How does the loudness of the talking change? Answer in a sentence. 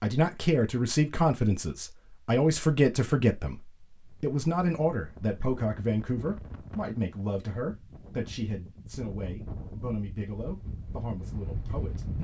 The loudness of the talking goes down.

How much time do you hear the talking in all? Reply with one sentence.
You can hear the talking for 12 seconds altogether.